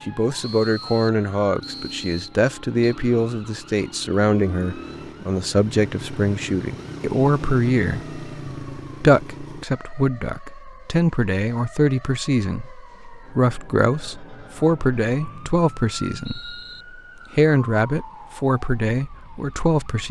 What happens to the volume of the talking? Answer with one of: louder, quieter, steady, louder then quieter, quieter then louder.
steady.